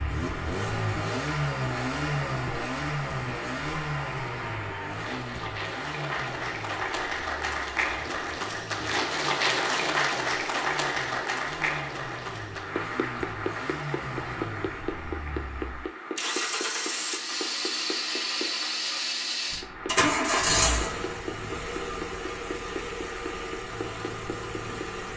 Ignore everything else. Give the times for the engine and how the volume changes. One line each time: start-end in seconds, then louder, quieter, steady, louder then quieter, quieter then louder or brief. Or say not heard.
0.0-25.1 quieter then louder.